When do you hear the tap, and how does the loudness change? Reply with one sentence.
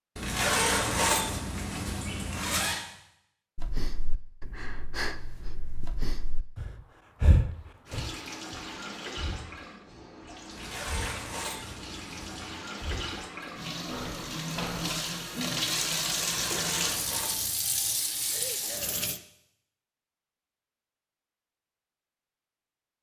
You can hear the tap from 7.8 to 19.2 s, getting louder.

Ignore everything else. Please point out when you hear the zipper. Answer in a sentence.
You can hear the zipper from 0.1 to 2.8 s, from 10.5 to 12.6 s and from 16.3 to 17.6 s.